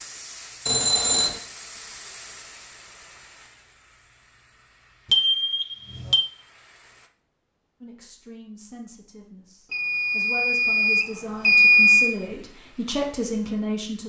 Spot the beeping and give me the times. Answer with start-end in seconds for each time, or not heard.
0.7-1.4, 5.1-6.2, 9.7-12.2.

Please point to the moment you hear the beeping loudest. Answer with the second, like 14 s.
12 s.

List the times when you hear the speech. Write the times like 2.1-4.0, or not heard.
7.8-14.0.